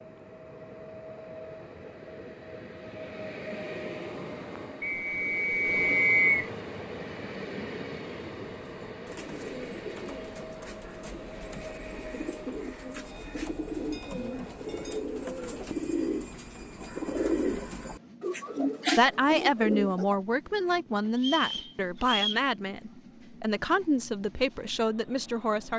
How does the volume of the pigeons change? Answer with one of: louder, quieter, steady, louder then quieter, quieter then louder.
louder.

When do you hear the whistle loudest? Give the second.
6 s.